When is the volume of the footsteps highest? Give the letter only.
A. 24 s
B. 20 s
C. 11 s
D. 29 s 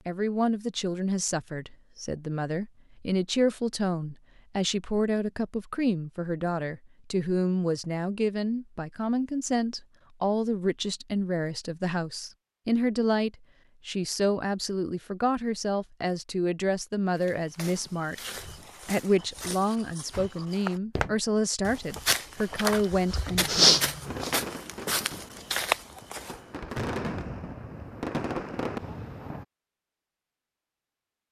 A.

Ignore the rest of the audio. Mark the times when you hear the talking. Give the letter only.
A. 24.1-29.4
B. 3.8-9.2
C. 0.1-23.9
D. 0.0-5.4
C.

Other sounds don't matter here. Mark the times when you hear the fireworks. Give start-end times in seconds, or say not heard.
24.1-29.4.